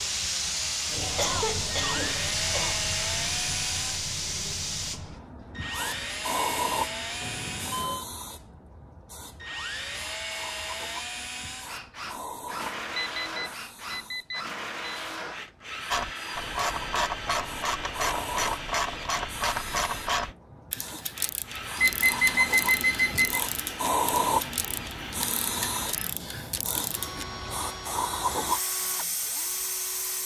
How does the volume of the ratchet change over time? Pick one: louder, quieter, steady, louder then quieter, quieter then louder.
quieter.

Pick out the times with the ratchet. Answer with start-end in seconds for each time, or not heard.
15.9-27.2.